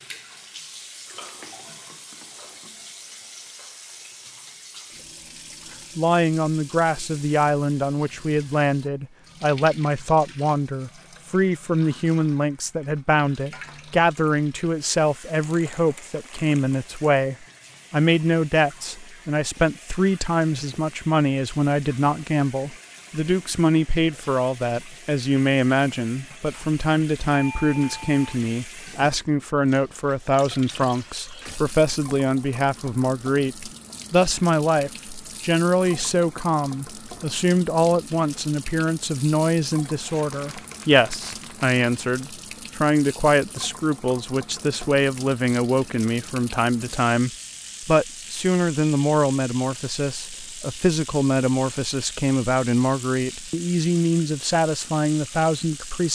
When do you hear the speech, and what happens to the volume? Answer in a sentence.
You can hear the speech from 6.0 to 56.1 s, at a steady volume.